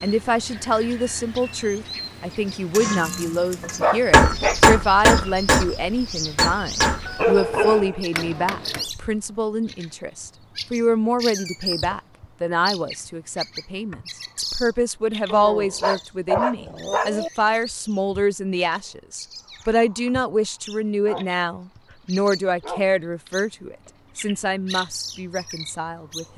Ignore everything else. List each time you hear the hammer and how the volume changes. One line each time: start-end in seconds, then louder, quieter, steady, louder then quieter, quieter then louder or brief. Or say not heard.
2.7-8.9 quieter.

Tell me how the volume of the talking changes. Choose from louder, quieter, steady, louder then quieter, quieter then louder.
steady.